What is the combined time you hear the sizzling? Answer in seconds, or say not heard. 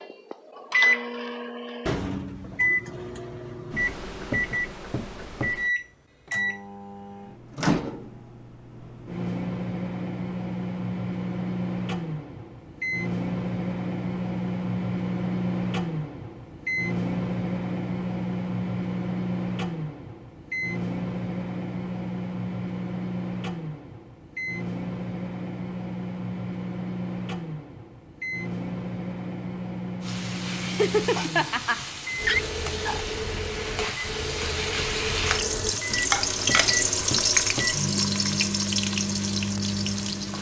10 s.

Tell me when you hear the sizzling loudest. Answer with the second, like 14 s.
37 s.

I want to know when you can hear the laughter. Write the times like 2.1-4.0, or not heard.
30.6-33.0.